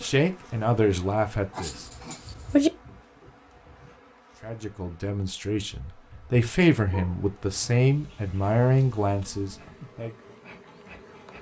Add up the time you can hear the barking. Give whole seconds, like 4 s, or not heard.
3 s.